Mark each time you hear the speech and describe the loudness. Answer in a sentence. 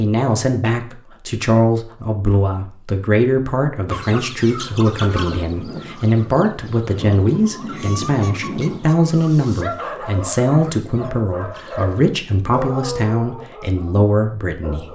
The speech can be heard from 0.0 to 14.8 s, at a steady volume.